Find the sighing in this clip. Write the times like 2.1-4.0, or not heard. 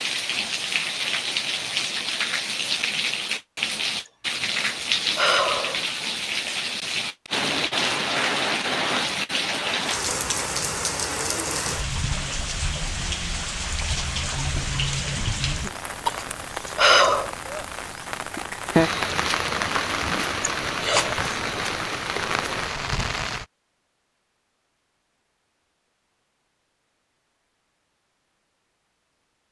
4.0-5.8, 15.7-17.4, 20.6-21.4.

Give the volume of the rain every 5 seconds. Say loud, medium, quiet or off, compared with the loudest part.
loud, loud, loud, loud, loud, off.